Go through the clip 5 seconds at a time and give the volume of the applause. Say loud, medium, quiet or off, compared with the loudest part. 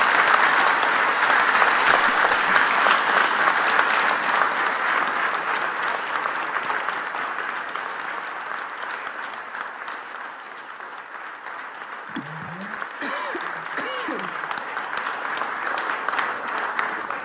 loud, medium, quiet, medium.